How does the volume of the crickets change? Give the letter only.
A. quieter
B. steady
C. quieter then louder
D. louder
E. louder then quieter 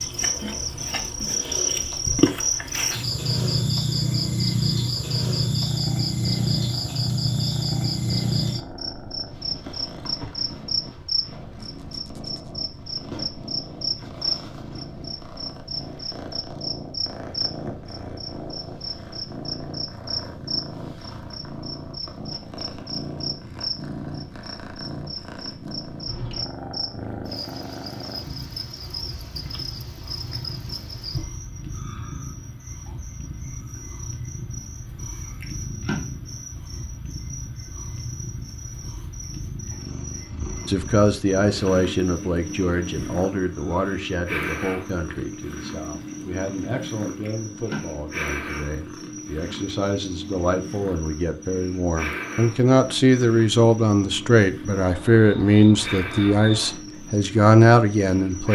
A.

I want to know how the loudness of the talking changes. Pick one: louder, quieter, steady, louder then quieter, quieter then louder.
quieter then louder.